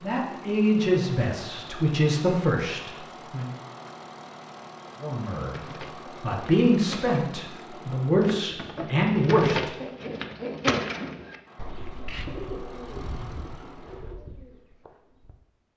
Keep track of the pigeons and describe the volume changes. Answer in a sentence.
The volume of the pigeons goes up, then down.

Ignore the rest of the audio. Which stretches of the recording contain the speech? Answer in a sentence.
You can hear the speech from 0.0 to 3.5 s, from 5.0 to 5.5 s and from 6.2 to 9.7 s.